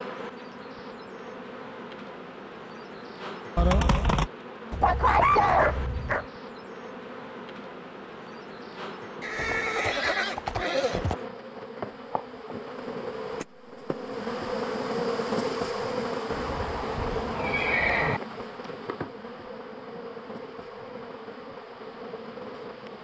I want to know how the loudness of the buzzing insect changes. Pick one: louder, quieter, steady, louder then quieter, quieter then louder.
louder then quieter.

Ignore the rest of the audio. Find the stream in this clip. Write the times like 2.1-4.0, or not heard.
not heard.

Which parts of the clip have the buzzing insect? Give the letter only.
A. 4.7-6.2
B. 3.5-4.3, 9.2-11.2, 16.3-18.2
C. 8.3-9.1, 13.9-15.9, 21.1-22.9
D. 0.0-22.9
D.